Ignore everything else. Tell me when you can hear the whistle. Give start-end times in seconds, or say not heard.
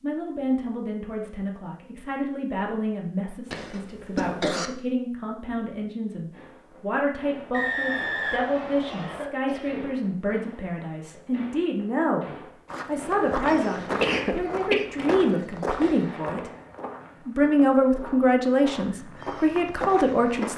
7.5-9.3.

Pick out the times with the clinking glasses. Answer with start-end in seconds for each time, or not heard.
not heard.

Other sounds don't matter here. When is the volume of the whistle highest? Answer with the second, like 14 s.
8 s.